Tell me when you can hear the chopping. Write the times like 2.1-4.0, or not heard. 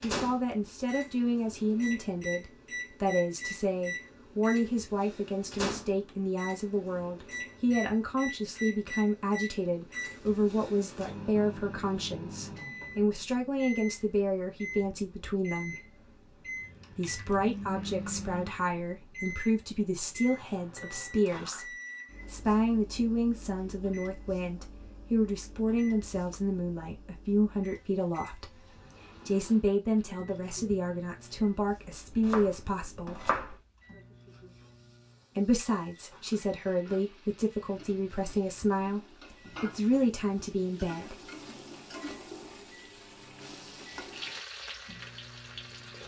32.1-33.6.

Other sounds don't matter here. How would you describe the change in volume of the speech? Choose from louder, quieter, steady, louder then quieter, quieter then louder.
steady.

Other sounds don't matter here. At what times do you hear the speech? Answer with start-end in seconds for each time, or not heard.
0.0-15.8, 16.9-28.6, 29.2-33.3, 35.4-41.2.